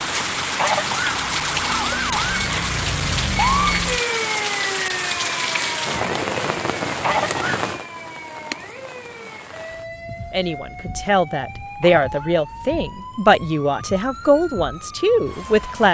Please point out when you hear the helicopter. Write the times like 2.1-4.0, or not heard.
not heard.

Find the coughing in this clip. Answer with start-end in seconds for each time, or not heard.
0.5-2.2, 7.0-7.7, 11.8-12.3.